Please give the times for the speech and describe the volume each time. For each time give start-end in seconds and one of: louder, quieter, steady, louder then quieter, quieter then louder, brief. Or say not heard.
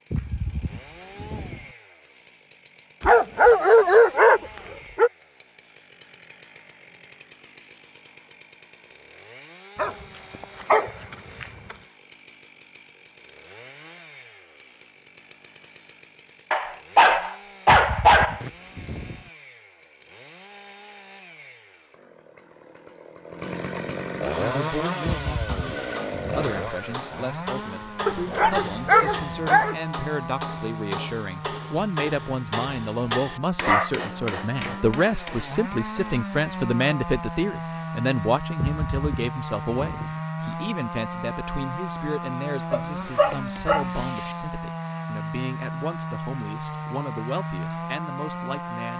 24.4-48.9 louder then quieter.